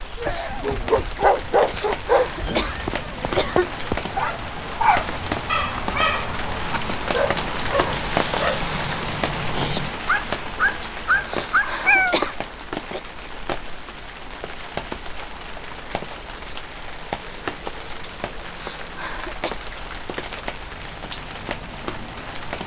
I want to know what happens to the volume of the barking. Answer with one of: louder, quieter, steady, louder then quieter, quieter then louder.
quieter then louder.